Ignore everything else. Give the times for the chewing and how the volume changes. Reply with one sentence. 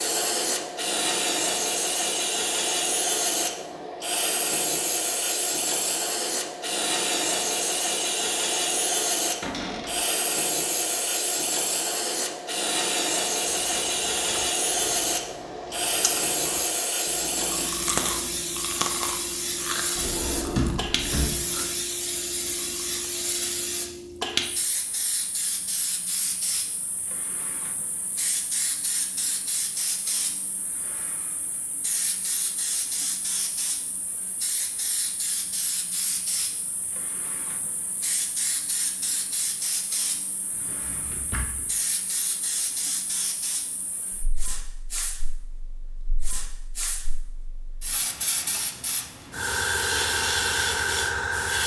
You can hear the chewing from 13.4 to 23.1 s, getting louder then quieter.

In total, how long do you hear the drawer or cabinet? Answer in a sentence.
You can hear the drawer or cabinet for 3 seconds altogether.